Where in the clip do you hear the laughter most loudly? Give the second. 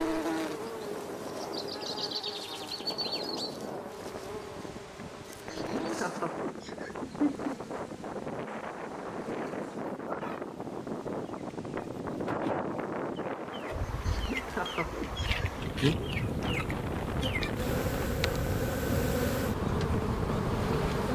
7 s.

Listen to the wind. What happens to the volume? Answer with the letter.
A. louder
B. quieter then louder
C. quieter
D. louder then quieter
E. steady
A.